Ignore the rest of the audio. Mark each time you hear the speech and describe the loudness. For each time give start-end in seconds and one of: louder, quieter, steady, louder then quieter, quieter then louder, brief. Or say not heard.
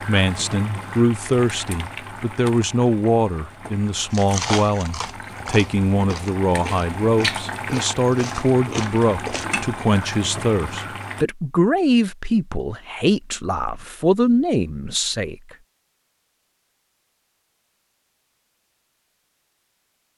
0.1-15.3 steady.